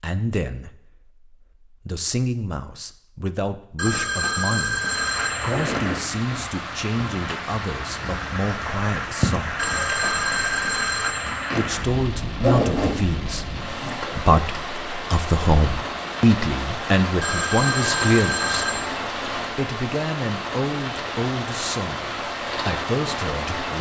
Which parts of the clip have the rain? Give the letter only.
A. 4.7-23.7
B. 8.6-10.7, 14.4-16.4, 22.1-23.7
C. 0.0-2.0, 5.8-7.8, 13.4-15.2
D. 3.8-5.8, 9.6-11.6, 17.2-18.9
A.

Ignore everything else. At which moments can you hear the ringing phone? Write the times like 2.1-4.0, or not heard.
3.8-5.8, 9.6-11.6, 17.2-18.9.